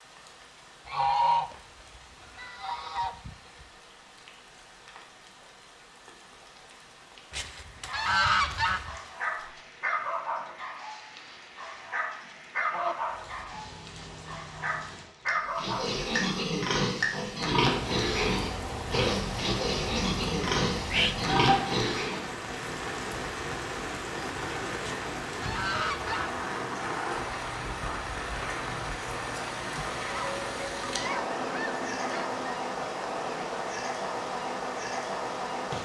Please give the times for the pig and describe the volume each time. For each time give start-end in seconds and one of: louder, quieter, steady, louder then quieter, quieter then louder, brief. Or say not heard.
15.6-22.2 steady.